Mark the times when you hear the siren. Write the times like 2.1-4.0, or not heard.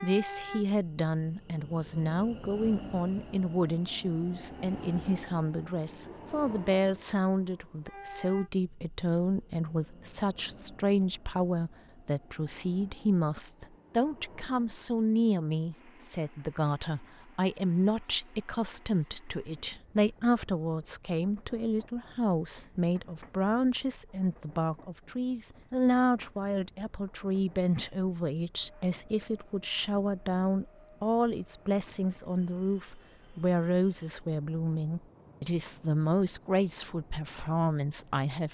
not heard.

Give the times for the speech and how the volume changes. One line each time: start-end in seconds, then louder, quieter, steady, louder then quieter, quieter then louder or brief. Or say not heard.
0.0-38.4 steady.